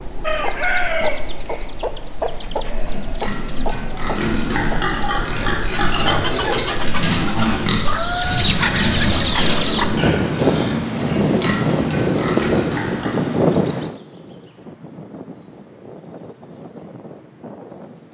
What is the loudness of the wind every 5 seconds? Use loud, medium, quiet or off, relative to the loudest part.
quiet, medium, loud, quiet.